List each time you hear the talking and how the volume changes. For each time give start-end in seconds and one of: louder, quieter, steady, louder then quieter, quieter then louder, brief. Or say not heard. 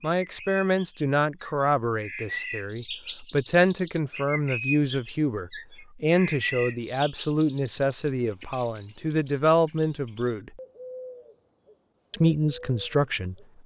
0.0-10.5 steady
12.1-13.3 brief.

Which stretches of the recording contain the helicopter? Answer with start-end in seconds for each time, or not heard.
not heard.